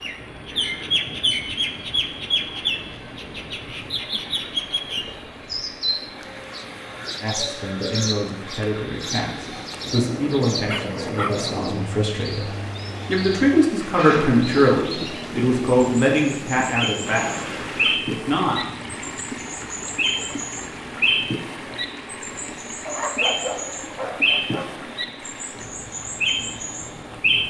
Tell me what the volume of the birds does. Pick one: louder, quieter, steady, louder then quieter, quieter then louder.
quieter then louder.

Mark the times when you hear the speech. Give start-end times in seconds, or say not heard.
7.2-18.6.